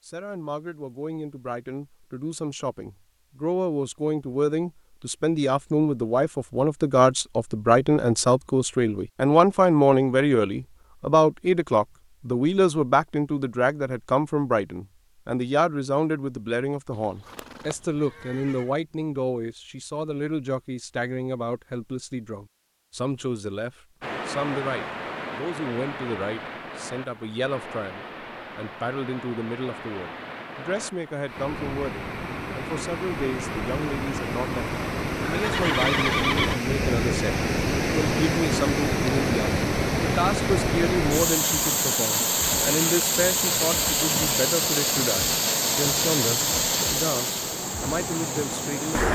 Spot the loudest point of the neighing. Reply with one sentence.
The volume of the neighing peaks at 36 seconds.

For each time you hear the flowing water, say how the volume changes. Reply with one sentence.
The flowing water can be heard from 24.0 to 49.0 s, getting louder.